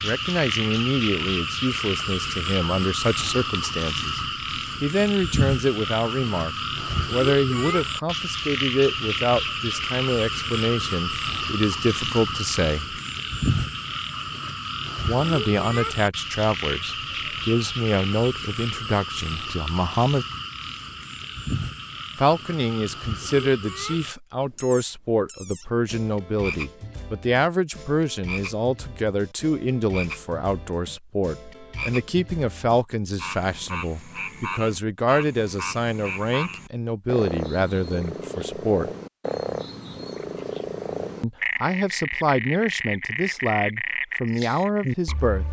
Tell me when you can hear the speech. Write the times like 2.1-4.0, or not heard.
0.0-4.2, 4.8-13.0, 15.1-20.2, 22.1-38.9, 41.2-45.4.